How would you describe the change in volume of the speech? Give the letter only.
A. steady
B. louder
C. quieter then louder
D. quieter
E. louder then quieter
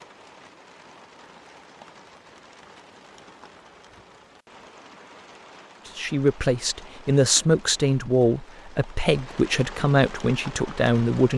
A.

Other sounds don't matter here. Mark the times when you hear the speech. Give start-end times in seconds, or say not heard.
5.8-11.3.